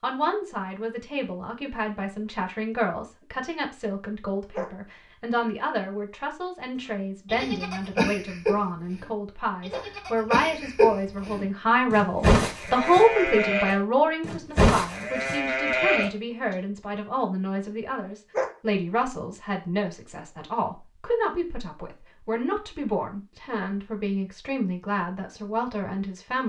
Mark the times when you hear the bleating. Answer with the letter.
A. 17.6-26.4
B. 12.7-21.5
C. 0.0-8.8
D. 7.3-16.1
D.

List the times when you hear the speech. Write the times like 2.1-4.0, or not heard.
0.0-26.4.